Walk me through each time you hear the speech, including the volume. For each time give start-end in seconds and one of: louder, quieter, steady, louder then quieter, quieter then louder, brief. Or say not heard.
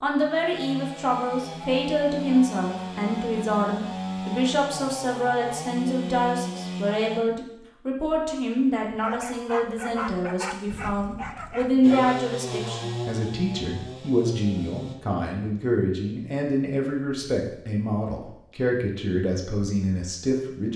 0.0-20.7 steady.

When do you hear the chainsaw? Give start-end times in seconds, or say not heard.
0.1-7.2, 11.8-14.9.